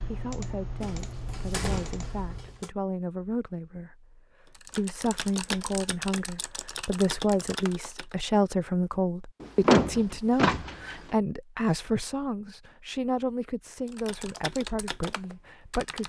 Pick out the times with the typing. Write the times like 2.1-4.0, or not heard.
0.0-2.6, 4.5-8.2, 13.8-16.0.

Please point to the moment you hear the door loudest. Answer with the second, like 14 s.
10 s.